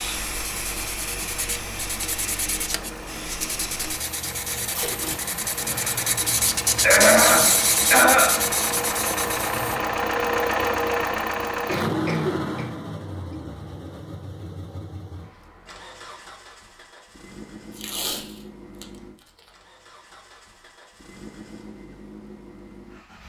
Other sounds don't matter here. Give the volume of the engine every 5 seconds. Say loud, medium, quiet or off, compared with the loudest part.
quiet, loud, loud, quiet, quiet.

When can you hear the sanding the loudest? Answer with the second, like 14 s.
7 s.